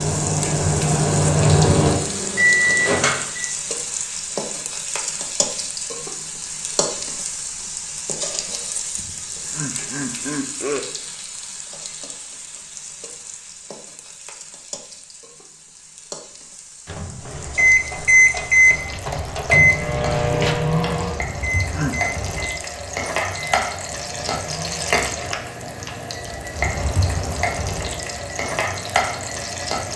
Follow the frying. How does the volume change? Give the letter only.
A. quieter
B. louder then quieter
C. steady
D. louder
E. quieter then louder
E.